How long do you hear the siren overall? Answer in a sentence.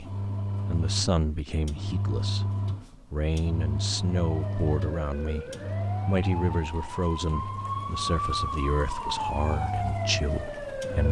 The siren can be heard for 7 seconds in total.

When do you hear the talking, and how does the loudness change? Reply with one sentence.
The talking can be heard from 0.0 to 11.0 s, at a steady volume.